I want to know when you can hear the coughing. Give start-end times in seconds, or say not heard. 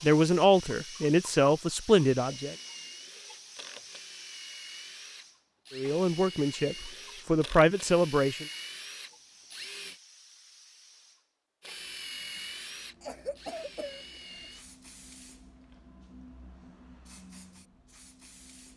13.0-14.5.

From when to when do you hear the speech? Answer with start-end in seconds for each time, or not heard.
0.0-2.5, 5.8-8.4.